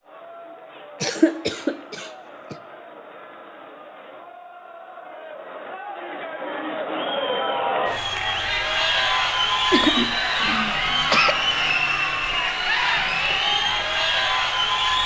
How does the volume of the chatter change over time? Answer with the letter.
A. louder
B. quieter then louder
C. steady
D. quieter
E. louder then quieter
A.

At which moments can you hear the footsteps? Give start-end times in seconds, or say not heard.
not heard.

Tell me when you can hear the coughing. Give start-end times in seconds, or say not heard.
1.0-2.5, 9.7-11.3.